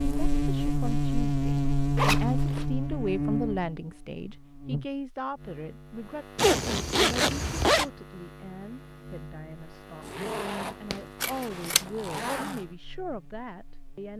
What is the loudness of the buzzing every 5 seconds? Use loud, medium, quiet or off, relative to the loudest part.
loud, quiet, quiet.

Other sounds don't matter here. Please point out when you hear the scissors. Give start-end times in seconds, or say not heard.
11.2-11.8.